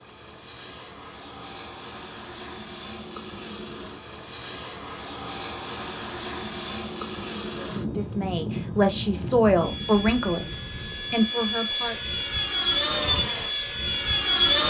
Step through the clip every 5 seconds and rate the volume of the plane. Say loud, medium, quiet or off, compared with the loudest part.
quiet, medium, loud.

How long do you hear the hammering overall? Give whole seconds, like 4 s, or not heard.
not heard.